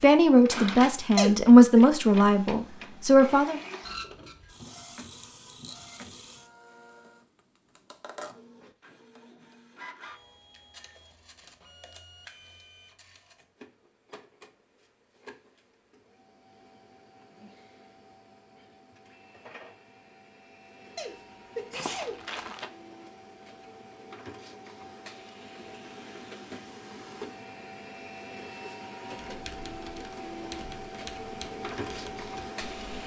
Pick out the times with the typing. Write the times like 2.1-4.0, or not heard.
29.2-33.0.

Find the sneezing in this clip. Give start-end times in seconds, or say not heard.
1.1-1.9, 20.9-22.6.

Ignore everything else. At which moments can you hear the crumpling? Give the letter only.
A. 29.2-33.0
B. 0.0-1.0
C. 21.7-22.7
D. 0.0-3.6
C.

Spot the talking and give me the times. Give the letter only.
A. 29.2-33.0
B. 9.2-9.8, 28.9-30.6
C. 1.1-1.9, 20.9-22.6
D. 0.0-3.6
D.